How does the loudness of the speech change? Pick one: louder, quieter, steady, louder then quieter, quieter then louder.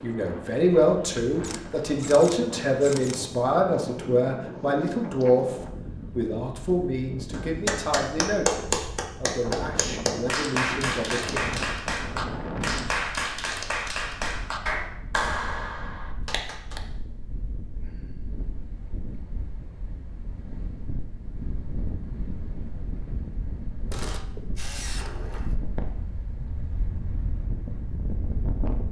quieter.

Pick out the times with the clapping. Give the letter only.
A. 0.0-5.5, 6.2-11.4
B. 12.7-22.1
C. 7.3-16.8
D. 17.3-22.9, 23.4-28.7
C.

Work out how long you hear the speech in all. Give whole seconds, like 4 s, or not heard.
11 s.